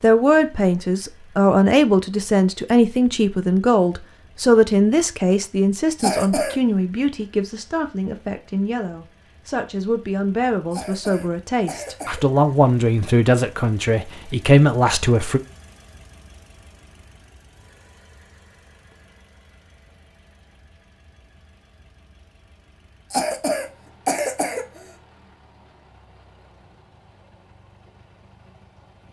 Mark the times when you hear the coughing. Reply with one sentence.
The coughing can be heard from 6.0 to 6.5 s, from 10.7 to 12.2 s and from 23.1 to 24.8 s.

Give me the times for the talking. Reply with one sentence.
You can hear the talking from 0.0 to 15.4 s.